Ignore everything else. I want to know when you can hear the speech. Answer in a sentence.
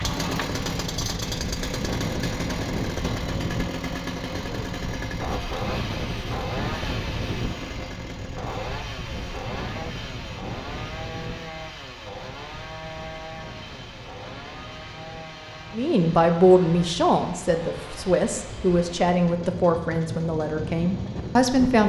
The speech can be heard from 15.7 to 21.8 s.